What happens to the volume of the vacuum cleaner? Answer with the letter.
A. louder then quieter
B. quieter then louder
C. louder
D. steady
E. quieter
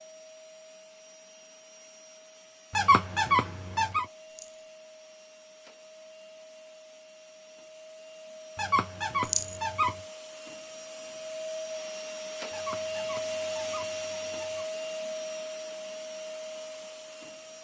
C.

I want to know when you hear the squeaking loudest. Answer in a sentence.
The volume of the squeaking peaks at 3 seconds.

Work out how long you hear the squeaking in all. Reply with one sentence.
The squeaking can be heard for 5 seconds in total.